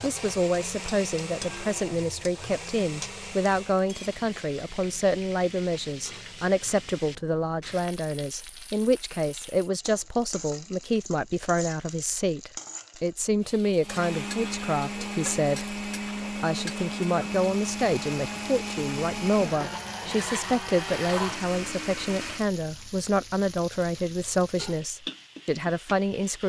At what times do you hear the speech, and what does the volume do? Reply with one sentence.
You can hear the speech from 0.0 to 26.4 s, at a steady volume.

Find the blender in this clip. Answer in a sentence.
The blender can be heard from 0.0 to 3.9 s and from 13.8 to 22.5 s.